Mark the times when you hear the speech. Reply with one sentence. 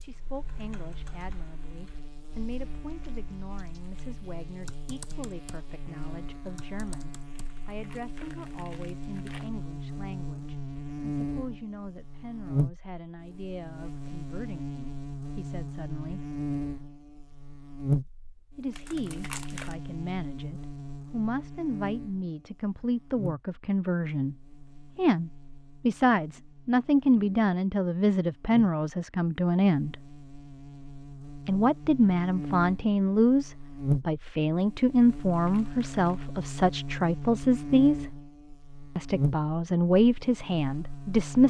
The speech can be heard from 0.0 to 16.2 s, from 18.6 to 30.0 s, from 31.4 to 38.1 s and from 39.0 to 41.4 s.